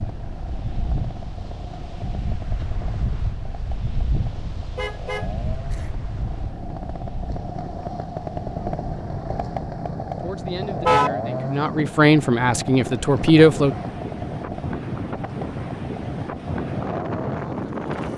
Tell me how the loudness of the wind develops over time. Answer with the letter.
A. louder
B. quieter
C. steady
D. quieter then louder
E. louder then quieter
D.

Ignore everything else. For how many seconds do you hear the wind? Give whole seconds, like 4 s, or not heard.
18 s.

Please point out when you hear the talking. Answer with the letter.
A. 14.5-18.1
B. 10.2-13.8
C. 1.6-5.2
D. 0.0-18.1
B.